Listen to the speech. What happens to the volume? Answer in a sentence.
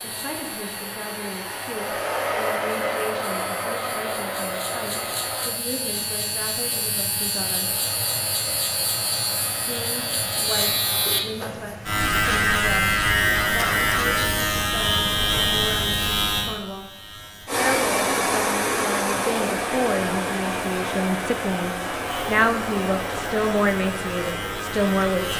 The volume of the speech goes up.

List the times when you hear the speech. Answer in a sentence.
You can hear the speech from 0.0 to 7.7 s, from 9.6 to 16.9 s and from 17.6 to 25.3 s.